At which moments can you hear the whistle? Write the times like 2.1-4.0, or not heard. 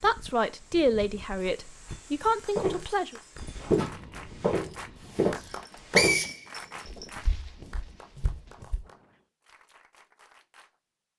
5.4-7.0.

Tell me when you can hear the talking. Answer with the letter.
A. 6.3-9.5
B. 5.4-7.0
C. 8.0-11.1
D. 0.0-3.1
D.